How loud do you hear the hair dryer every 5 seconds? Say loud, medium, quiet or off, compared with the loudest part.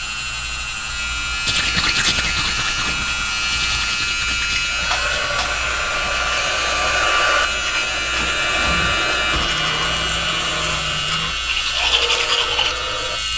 medium, loud, medium.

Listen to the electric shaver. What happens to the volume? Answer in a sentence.
The loudness of the electric shaver stays about the same.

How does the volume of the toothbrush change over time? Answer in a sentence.
The loudness of the toothbrush goes down, then up.